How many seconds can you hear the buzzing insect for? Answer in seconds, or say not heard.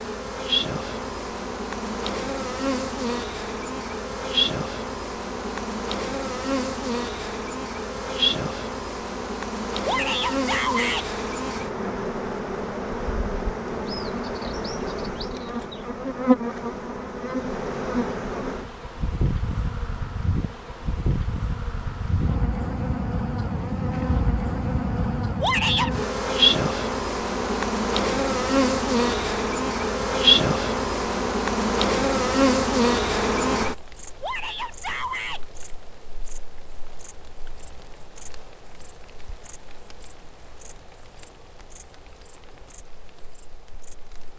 44 s.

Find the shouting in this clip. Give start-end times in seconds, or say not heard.
9.8-11.1, 25.4-25.9, 34.2-35.4.